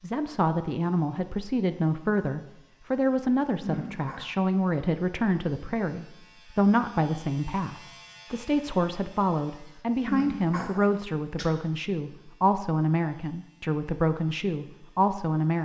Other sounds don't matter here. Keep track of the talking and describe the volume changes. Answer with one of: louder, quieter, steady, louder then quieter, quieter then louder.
steady.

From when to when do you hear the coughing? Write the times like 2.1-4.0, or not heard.
3.6-4.2, 10.1-11.5.